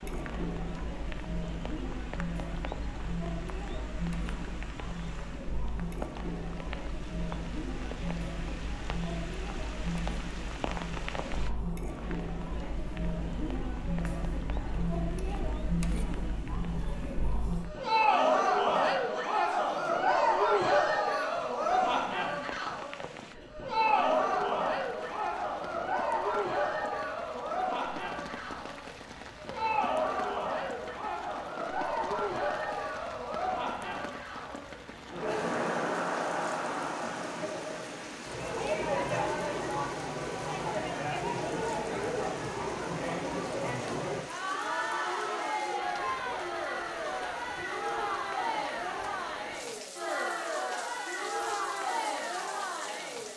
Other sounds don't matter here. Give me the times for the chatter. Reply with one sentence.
The chatter can be heard from 0.0 to 53.3 s.